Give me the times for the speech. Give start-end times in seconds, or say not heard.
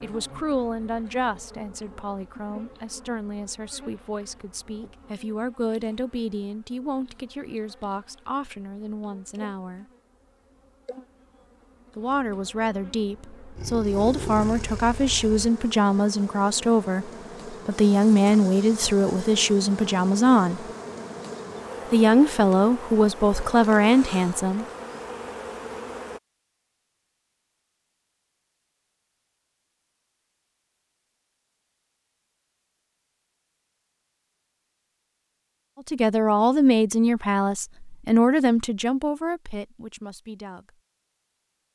0.0-9.8, 11.9-20.6, 21.9-24.6, 35.9-40.7.